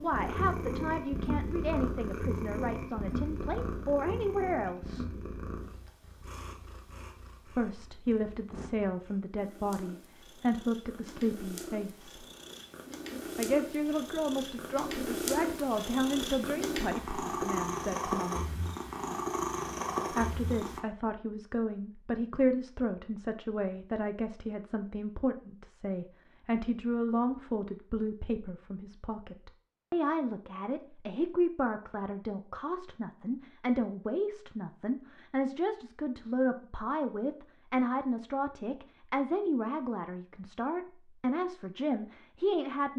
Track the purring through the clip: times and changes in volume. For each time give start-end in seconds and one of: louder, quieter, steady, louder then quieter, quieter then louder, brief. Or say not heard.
0.0-20.8 quieter then louder.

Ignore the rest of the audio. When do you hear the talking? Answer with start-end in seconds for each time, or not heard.
0.0-5.0, 7.5-12.2, 13.3-18.6, 20.1-42.9.